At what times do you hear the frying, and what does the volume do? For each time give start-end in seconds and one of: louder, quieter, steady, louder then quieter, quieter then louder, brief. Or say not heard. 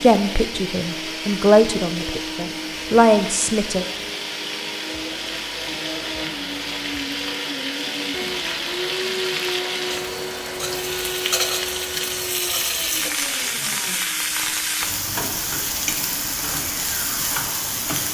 0.0-18.0 louder.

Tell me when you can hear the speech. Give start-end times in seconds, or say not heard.
0.0-3.9.